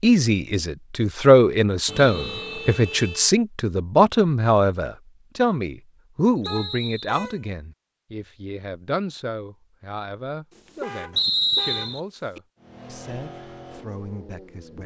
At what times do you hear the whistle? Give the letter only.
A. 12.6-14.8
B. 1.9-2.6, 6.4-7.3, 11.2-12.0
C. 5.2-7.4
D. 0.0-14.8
B.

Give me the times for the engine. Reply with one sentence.
You can hear the engine from 12.6 to 14.8 s.